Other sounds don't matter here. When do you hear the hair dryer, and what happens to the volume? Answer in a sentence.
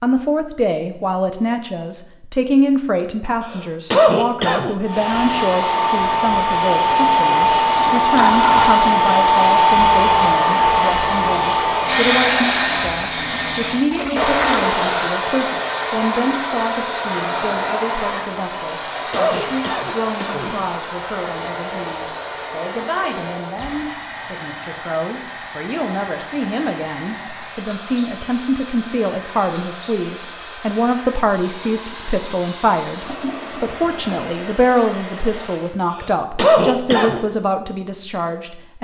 The hair dryer can be heard from 4.8 to 35.8 s, getting quieter.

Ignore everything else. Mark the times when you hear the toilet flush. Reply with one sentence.
You can hear the toilet flush from 7.5 to 8.8 s, from 13.9 to 14.7 s and from 33.0 to 34.2 s.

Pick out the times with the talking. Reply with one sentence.
The talking can be heard from 0.0 to 38.7 s.